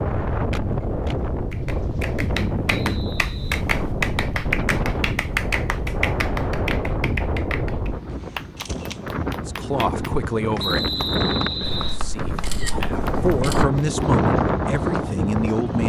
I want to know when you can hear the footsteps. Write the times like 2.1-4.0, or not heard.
not heard.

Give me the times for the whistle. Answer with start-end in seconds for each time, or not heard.
2.7-3.5, 10.6-12.0.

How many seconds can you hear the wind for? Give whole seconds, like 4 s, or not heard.
16 s.